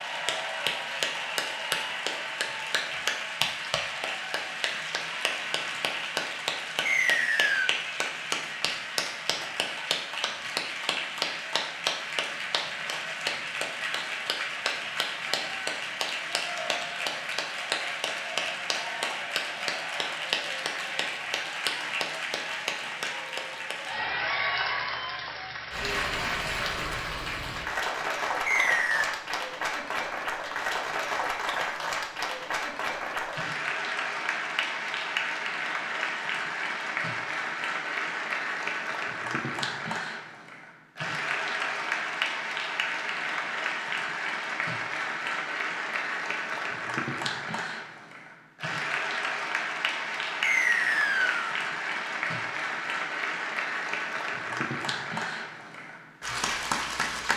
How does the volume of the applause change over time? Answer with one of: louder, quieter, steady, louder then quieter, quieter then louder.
steady.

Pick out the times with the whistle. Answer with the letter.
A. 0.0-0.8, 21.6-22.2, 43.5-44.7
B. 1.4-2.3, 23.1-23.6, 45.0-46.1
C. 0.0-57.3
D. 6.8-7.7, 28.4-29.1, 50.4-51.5
D.